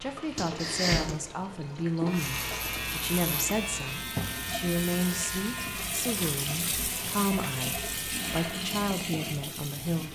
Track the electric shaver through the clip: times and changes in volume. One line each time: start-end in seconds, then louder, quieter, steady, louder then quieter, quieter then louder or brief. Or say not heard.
2.0-8.7 quieter.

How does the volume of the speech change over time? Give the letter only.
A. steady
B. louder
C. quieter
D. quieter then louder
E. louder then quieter
A.